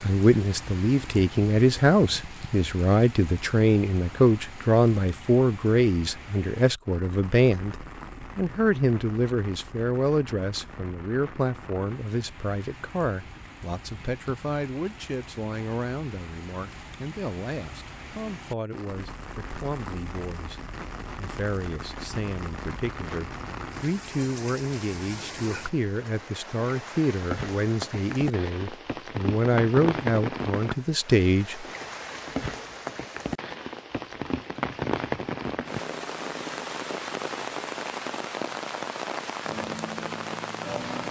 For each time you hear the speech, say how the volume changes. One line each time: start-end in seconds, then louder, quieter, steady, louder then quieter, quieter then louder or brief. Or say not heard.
0.0-31.6 quieter then louder.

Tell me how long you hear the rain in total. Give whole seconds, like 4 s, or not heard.
41 s.